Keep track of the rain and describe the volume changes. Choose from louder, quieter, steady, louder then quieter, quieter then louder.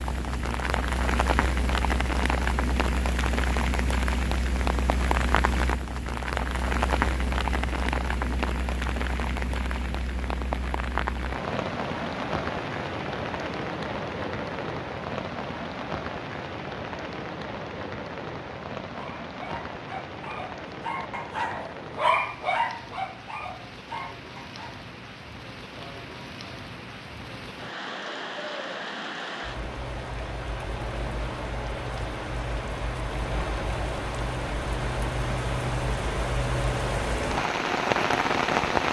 quieter then louder.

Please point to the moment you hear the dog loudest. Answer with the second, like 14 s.
22 s.